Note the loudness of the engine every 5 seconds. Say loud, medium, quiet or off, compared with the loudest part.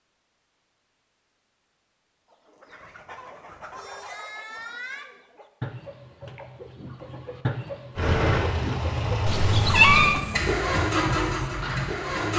off, loud, loud.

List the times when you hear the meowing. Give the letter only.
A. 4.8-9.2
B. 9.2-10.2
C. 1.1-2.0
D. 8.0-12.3
B.